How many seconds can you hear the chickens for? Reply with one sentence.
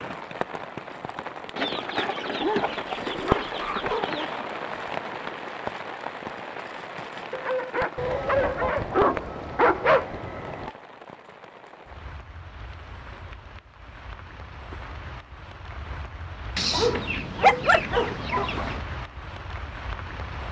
You can hear the chickens for 8 seconds altogether.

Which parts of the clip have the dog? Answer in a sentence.
You can hear the dog from 2.4 to 4.1 s, from 7.3 to 10.1 s and from 16.7 to 18.6 s.